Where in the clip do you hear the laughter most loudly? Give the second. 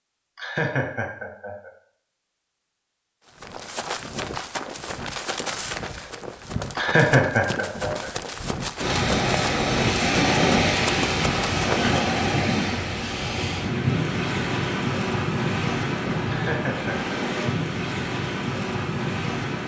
7 s.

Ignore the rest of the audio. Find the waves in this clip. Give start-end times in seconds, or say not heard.
8.8-19.6.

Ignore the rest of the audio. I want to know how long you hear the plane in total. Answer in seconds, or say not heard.
not heard.